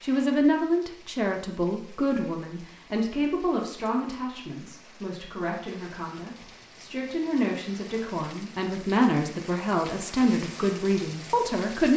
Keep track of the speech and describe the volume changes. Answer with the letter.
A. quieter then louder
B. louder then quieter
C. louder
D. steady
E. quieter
A.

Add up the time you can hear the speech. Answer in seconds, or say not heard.
12 s.